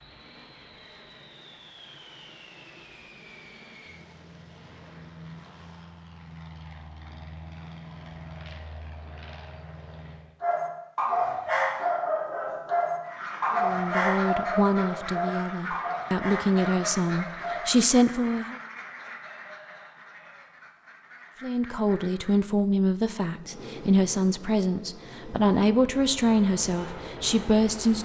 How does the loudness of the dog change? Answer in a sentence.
The loudness of the dog goes down.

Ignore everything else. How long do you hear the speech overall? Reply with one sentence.
You can hear the speech for 12 seconds altogether.